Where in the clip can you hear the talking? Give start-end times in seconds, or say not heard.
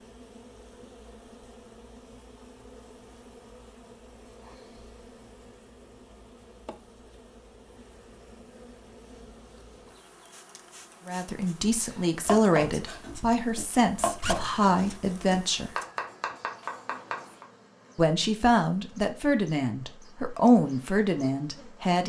11.1-15.7, 17.9-22.0.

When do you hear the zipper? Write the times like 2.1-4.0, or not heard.
14.2-14.9.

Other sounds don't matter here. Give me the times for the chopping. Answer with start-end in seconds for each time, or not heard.
11.8-17.4.